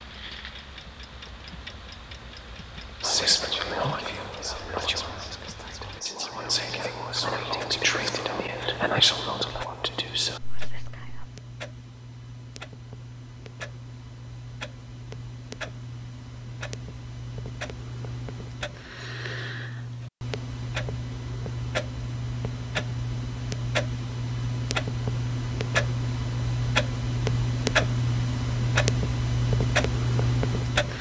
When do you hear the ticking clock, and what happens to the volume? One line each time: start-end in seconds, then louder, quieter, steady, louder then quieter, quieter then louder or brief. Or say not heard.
0.0-30.9 louder.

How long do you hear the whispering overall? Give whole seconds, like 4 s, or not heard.
8 s.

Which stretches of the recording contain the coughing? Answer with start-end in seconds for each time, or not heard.
not heard.